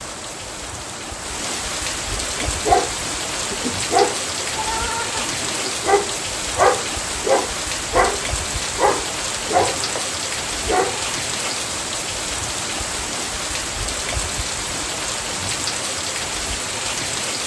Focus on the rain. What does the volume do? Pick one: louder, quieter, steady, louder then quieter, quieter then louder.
steady.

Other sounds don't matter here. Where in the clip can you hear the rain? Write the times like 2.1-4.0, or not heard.
0.0-17.4.